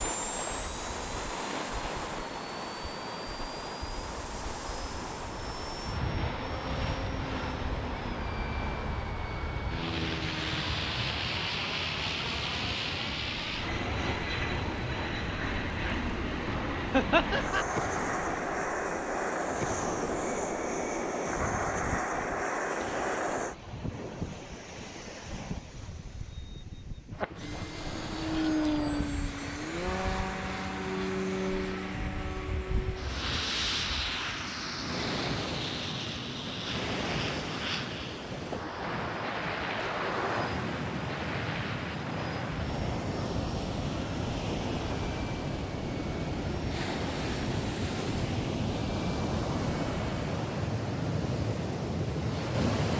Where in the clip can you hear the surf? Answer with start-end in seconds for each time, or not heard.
0.0-52.9.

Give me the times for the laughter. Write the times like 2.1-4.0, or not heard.
16.9-17.6.